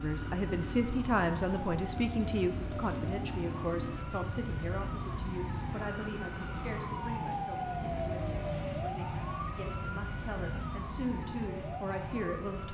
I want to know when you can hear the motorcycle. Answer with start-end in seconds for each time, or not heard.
0.0-5.8.